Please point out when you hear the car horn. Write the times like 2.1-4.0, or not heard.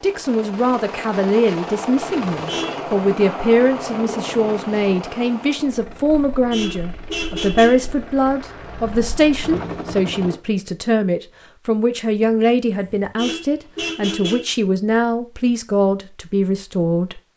2.3-2.8, 6.1-7.9, 12.8-14.6.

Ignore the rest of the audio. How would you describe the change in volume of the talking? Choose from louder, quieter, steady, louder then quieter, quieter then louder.
steady.